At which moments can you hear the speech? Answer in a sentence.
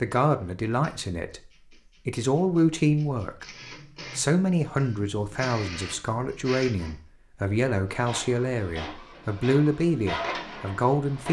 The speech can be heard from 0.0 to 1.4 s, from 2.0 to 3.5 s and from 4.2 to 11.2 s.